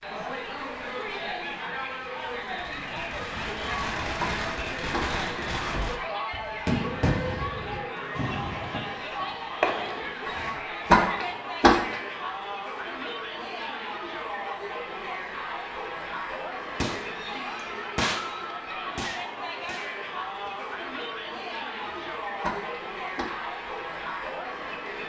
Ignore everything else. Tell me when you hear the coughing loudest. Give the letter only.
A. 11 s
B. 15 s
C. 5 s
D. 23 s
A.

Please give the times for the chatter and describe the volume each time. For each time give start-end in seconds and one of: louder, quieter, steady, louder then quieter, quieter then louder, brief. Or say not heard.
0.0-25.0 steady.